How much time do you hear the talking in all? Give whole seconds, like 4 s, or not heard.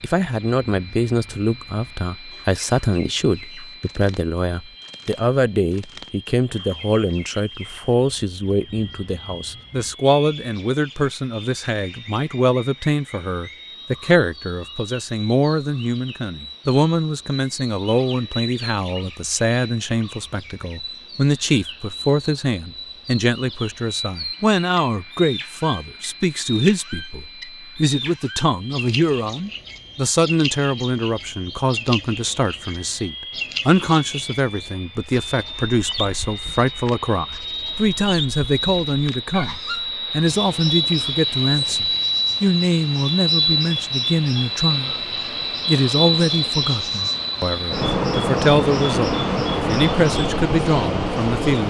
51 s.